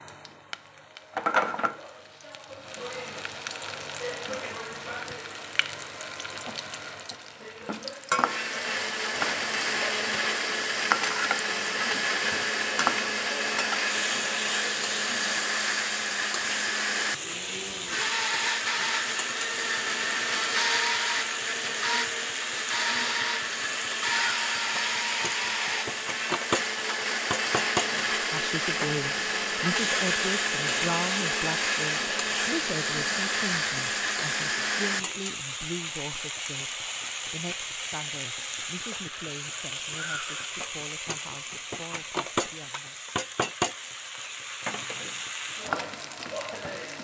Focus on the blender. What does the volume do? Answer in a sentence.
The loudness of the blender stays about the same.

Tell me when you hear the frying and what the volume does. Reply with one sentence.
The frying can be heard from 0.0 to 46.9 s, at a steady volume.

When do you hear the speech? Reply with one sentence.
You can hear the speech from 27.9 to 43.0 s.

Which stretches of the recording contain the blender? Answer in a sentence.
You can hear the blender from 8.1 to 35.2 s.